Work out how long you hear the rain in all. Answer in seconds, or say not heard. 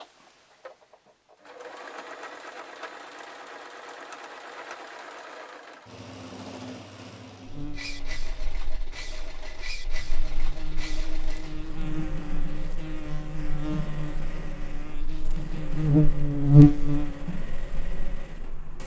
not heard.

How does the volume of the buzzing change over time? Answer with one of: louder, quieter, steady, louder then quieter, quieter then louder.
louder.